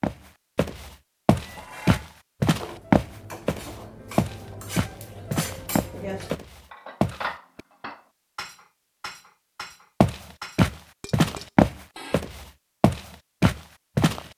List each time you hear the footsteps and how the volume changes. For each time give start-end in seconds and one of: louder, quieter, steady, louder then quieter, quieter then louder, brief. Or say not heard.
0.0-7.6 louder then quieter
10.0-14.2 quieter then louder.